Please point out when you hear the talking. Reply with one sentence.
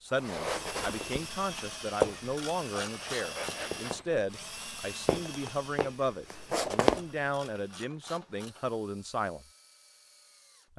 You can hear the talking from 0.0 to 9.4 s.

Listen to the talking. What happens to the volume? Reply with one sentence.
The volume of the talking stays about the same.